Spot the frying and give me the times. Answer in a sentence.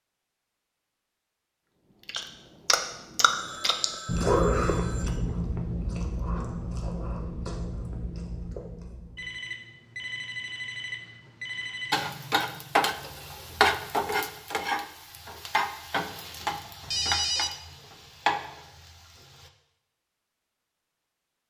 You can hear the frying from 11.9 to 19.5 s.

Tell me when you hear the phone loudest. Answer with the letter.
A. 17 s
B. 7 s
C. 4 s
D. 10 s
A.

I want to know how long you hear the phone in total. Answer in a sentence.
The phone can be heard for 5 seconds in total.